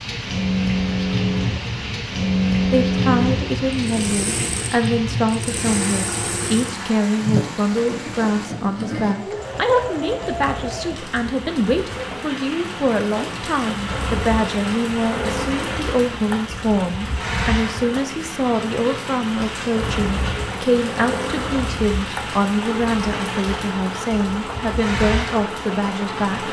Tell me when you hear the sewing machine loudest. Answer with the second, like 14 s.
3 s.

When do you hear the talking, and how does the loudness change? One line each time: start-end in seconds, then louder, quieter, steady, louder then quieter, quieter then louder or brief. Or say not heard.
2.7-26.4 steady.